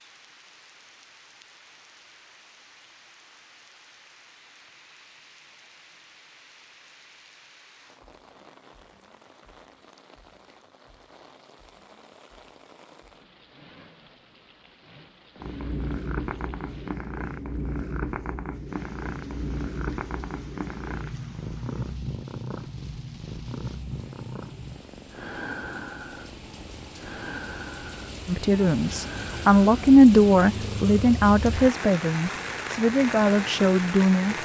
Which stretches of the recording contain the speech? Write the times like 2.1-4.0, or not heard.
28.2-34.3.